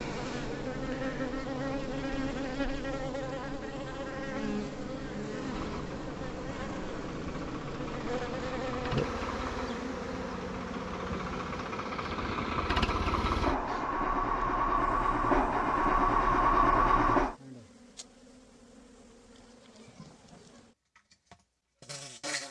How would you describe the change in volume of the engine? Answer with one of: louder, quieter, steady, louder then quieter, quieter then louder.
louder.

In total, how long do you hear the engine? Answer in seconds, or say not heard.
12 s.